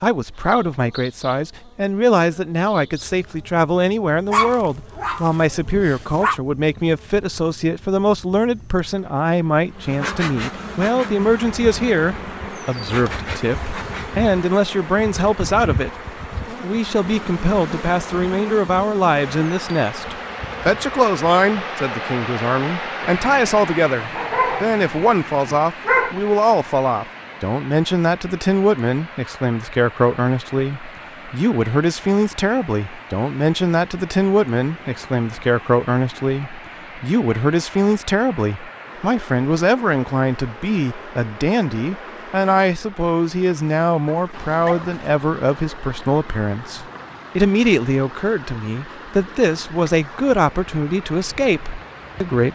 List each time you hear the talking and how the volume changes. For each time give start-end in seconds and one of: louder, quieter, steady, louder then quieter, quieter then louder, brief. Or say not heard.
0.0-15.9 steady
16.5-52.4 steady.